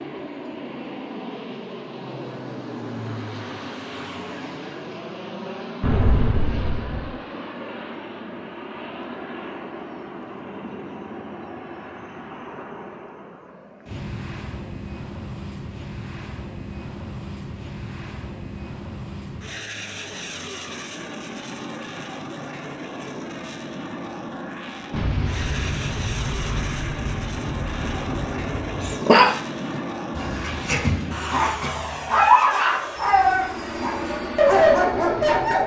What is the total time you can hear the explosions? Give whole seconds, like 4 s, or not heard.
5 s.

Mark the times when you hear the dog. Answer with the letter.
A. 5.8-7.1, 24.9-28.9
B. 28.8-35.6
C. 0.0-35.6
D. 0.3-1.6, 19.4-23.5
B.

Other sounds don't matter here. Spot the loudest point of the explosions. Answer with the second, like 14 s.
6 s.